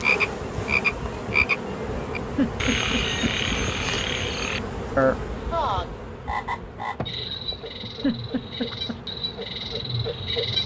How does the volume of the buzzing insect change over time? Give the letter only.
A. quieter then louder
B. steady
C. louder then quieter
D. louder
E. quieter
E.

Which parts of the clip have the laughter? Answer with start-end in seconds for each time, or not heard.
2.4-3.3, 8.0-9.0.